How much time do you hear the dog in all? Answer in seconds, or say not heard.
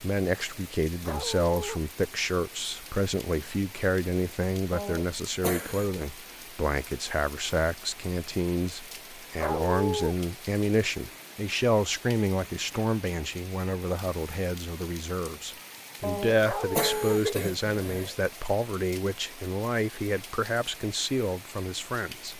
2 s.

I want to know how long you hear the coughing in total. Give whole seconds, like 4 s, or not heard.
3 s.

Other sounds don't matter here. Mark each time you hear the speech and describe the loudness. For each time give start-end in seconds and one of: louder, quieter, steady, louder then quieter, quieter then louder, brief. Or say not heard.
0.0-22.3 steady.